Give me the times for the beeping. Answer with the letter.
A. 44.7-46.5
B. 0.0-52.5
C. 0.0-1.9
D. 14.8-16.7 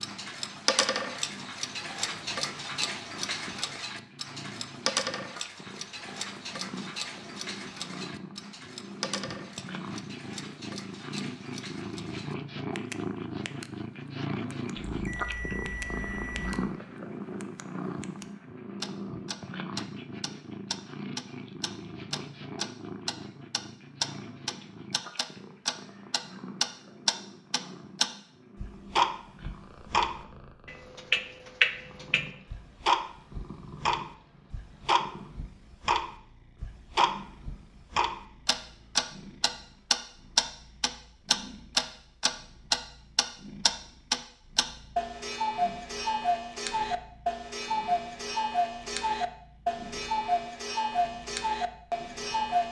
D.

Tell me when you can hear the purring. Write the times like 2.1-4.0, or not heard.
0.0-52.5.